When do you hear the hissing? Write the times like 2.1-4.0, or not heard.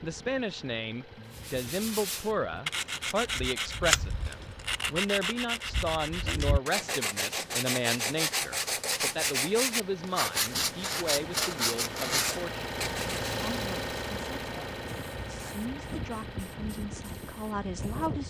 0.0-2.5, 14.8-18.2.